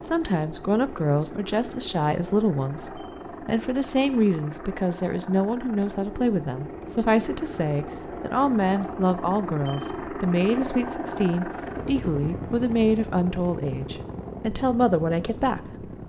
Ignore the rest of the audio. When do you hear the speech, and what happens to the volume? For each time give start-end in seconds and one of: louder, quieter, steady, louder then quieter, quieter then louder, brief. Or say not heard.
0.0-15.9 steady.